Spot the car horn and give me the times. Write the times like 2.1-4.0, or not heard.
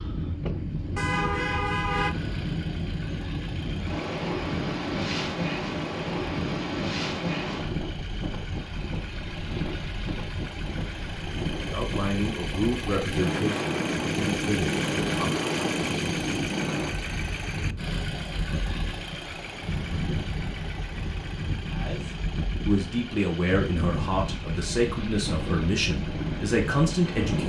0.9-2.1.